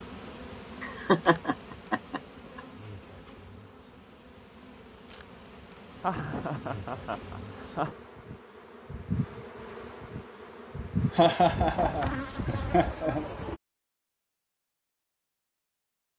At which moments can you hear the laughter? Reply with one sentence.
The laughter can be heard from 0.8 to 2.6 s, from 6.0 to 8.0 s and from 11.1 to 13.3 s.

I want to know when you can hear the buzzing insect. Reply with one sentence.
You can hear the buzzing insect from 0.0 to 13.6 s.